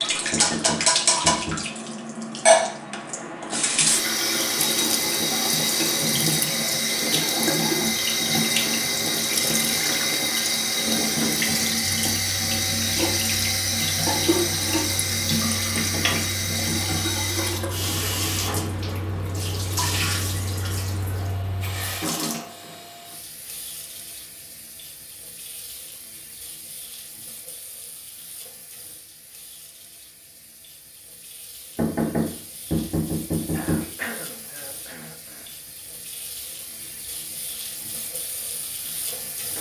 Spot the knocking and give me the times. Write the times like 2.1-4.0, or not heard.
0.3-1.6, 15.8-17.0, 31.8-33.9.